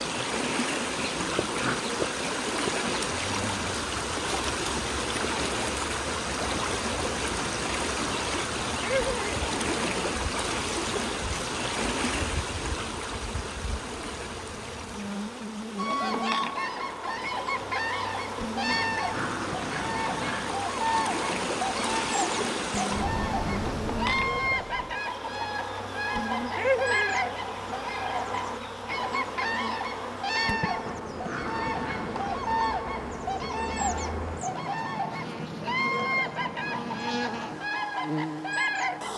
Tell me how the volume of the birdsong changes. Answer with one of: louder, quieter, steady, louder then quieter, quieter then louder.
steady.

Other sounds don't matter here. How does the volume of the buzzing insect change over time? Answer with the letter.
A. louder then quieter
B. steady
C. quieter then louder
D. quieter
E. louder
B.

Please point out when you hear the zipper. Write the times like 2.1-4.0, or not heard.
not heard.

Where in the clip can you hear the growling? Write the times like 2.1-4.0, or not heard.
1.2-1.9, 18.7-20.6, 30.9-32.5.